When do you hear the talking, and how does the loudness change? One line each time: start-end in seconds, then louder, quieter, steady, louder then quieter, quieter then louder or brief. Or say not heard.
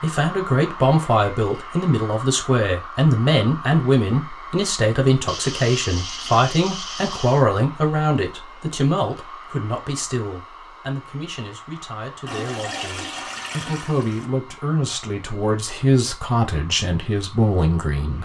0.0-18.2 quieter then louder.